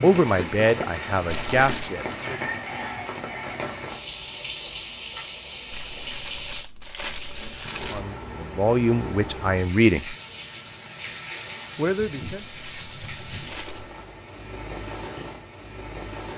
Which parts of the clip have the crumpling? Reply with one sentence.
The crumpling can be heard from 1.2 to 1.9 s, from 5.7 to 8.1 s and from 12.2 to 13.9 s.